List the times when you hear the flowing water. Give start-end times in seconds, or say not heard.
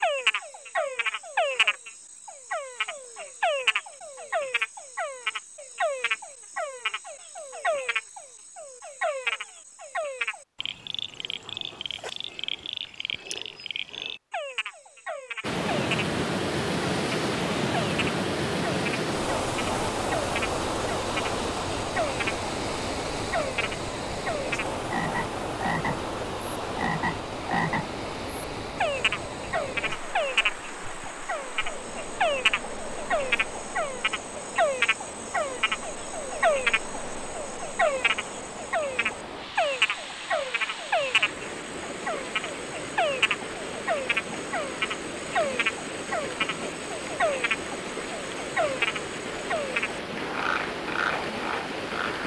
15.4-52.2.